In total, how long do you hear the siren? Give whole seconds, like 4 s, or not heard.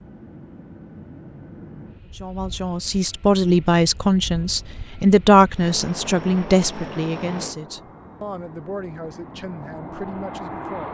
not heard.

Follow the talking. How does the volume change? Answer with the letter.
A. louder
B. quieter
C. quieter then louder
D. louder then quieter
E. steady
B.